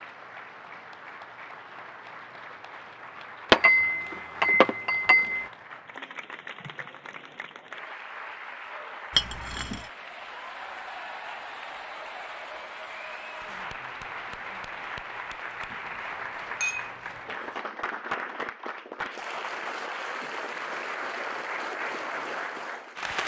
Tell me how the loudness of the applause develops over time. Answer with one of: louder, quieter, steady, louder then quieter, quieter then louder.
louder.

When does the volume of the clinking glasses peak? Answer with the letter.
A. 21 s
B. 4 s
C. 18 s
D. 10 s
B.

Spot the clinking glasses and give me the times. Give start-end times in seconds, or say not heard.
3.5-5.5, 9.2-9.8, 16.6-17.6.